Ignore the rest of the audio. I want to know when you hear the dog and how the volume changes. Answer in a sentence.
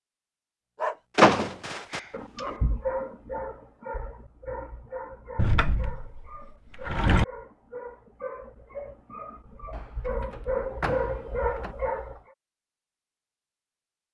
The dog can be heard from 0.8 to 12.2 s, getting quieter then louder.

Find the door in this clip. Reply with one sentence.
The door can be heard from 1.1 to 2.5 s, from 5.3 to 7.2 s and from 9.7 to 11.8 s.